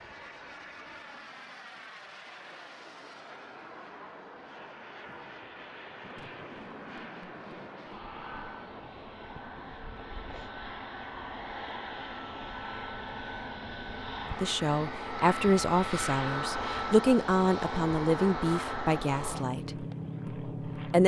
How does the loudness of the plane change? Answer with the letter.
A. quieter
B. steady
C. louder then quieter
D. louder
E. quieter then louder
D.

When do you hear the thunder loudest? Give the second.
7 s.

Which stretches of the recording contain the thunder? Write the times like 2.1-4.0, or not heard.
5.0-9.8.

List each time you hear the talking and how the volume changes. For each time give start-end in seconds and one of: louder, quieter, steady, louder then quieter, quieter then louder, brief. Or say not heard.
14.4-21.0 quieter.